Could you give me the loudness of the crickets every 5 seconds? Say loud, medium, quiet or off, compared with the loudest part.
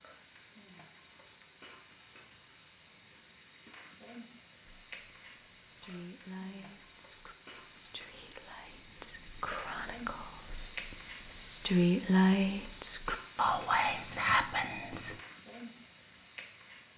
quiet, medium, loud, medium.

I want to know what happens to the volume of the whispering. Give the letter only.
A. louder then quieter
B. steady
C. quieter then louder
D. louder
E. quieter
D.